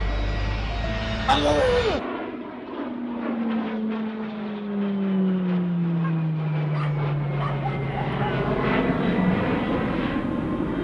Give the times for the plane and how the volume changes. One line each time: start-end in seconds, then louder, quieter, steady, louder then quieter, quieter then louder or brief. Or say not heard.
0.0-10.8 louder.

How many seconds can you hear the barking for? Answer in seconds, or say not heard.
3 s.